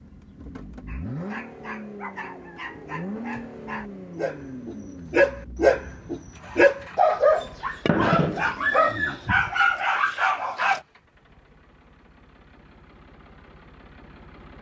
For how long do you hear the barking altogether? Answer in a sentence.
The barking can be heard for 10 seconds in total.